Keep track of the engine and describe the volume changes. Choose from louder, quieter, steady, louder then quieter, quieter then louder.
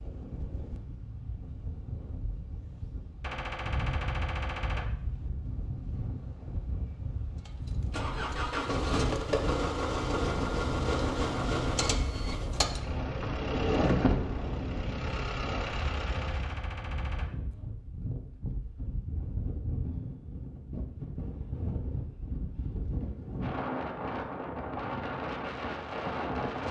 quieter.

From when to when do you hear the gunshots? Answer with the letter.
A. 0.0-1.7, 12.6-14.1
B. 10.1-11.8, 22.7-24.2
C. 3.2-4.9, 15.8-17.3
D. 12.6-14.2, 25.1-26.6
C.